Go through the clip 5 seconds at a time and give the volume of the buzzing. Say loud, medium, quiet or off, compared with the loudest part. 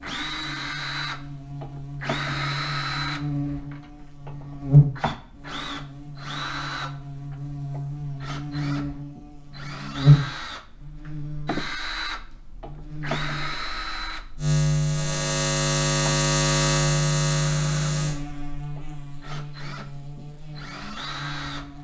loud, medium, loud, loud, quiet.